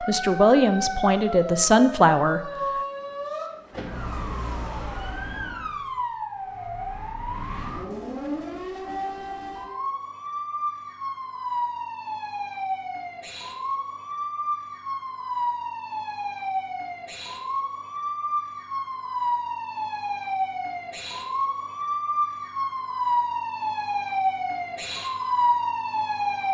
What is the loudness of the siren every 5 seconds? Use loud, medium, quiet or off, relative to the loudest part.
medium, medium, medium, medium, loud, loud.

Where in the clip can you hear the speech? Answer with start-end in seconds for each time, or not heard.
0.0-2.5.